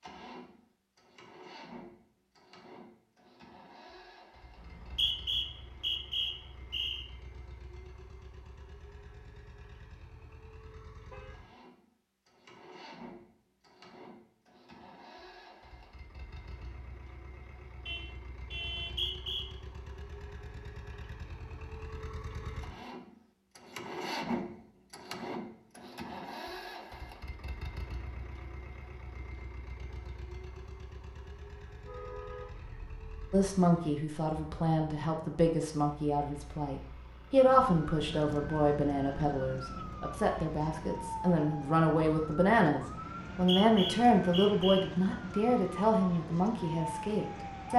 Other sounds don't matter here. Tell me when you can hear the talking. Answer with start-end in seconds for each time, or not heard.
33.3-47.7.